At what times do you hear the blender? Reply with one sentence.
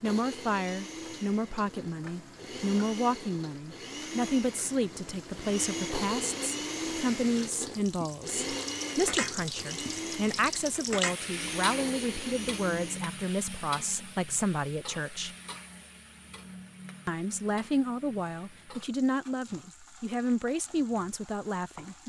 You can hear the blender from 0.0 to 13.1 s.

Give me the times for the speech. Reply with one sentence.
The speech can be heard from 0.0 to 15.3 s and from 17.1 to 22.0 s.